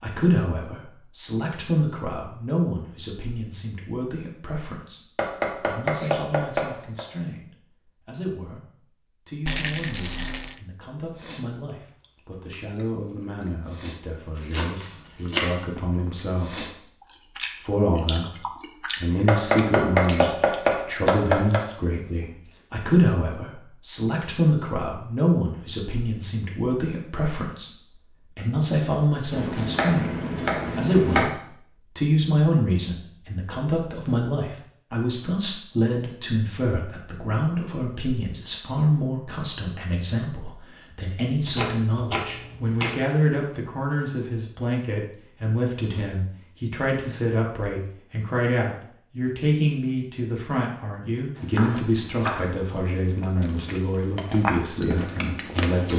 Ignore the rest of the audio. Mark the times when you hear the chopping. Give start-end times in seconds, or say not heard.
5.2-7.0, 14.5-15.8, 19.2-21.6, 29.3-31.3, 41.5-43.0, 51.4-52.5.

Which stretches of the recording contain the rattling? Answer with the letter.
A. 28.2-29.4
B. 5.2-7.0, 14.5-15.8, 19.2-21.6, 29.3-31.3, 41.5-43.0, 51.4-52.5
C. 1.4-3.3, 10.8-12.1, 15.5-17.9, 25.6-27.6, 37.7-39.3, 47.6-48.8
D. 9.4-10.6
D.